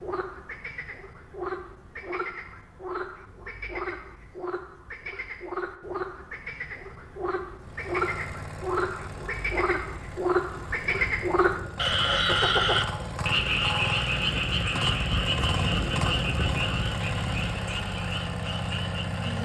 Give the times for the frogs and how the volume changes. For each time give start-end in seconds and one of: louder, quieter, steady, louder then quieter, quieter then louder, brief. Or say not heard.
0.0-19.4 louder then quieter.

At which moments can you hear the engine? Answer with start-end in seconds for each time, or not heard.
7.6-19.4.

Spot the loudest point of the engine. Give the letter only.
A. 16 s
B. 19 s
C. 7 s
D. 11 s
A.